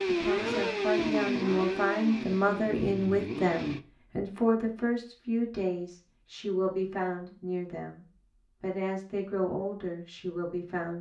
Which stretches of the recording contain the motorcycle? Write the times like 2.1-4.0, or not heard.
0.0-3.8.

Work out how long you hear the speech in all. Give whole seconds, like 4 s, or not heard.
11 s.